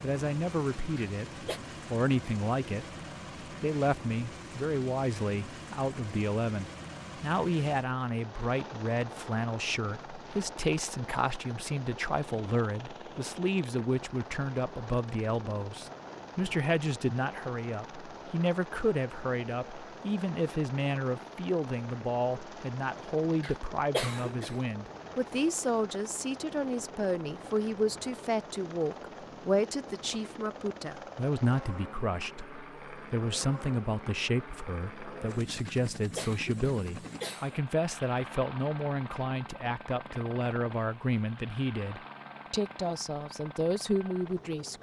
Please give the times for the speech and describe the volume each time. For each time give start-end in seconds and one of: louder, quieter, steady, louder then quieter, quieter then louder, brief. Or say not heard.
0.0-3.0 brief
3.6-44.7 steady.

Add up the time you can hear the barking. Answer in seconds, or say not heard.
not heard.